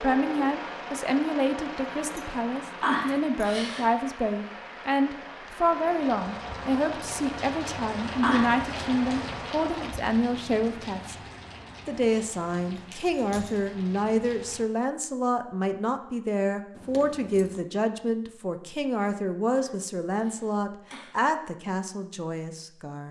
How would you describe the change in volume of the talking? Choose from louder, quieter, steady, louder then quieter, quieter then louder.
steady.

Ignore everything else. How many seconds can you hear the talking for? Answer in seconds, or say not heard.
22 s.